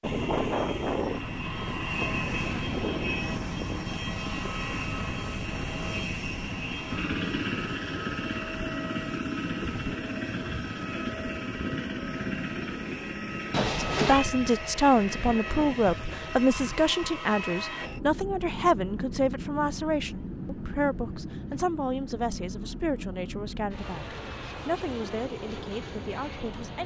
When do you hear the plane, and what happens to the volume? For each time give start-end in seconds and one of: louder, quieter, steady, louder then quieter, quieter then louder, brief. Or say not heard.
0.0-26.8 quieter.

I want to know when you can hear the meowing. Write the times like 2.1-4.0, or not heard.
13.5-14.3.